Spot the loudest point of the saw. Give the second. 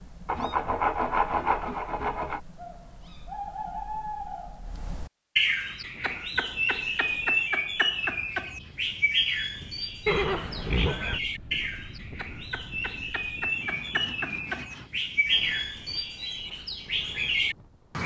1 s.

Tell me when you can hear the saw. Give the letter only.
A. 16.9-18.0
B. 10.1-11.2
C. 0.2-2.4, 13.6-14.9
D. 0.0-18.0
C.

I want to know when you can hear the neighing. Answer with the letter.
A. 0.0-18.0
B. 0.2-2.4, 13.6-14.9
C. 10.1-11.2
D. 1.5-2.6
C.